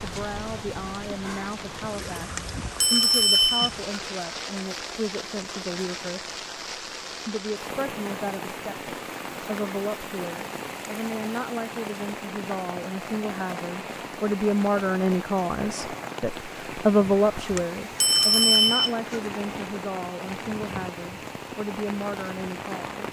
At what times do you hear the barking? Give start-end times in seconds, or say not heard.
not heard.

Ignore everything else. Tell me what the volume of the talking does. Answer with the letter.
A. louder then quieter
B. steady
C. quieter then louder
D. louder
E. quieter
A.